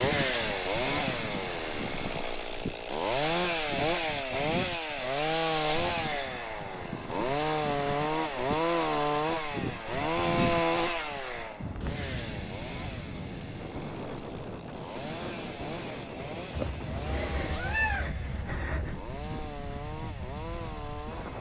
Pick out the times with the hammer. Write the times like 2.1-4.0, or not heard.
not heard.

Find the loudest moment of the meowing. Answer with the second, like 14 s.
18 s.